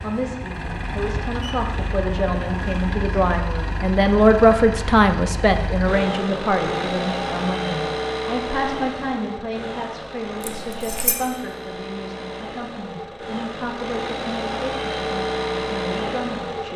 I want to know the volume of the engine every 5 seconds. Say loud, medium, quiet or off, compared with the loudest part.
medium, loud, medium, loud.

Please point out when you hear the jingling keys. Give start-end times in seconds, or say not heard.
10.4-11.2.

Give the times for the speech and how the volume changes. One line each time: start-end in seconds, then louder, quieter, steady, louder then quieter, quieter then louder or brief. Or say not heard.
0.0-16.7 louder then quieter.